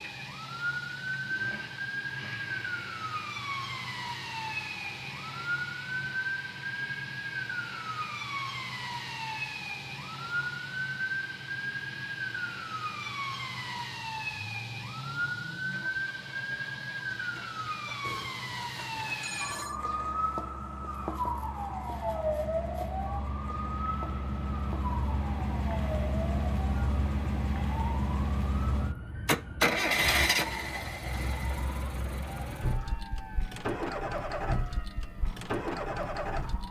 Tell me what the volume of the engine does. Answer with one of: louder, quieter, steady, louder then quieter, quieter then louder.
louder.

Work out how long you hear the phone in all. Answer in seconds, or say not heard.
2 s.